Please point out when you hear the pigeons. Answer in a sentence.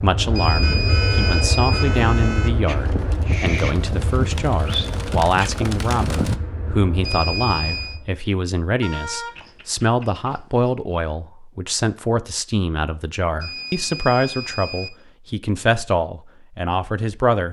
You can hear the pigeons from 0.6 to 6.4 s.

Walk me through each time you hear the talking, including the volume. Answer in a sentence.
You can hear the talking from 0.0 to 17.4 s, at a steady volume.